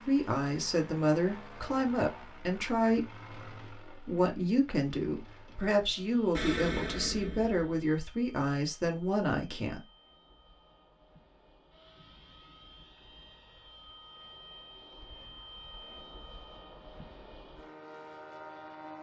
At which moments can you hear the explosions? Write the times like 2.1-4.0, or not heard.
6.3-7.7.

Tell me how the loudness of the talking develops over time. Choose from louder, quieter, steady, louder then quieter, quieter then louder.
steady.